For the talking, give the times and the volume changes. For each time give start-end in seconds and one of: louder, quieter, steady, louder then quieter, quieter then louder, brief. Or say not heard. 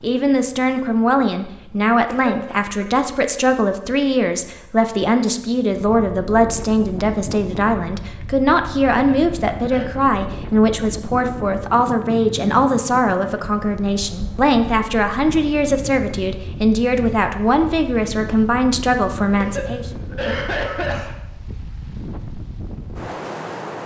0.0-19.9 steady.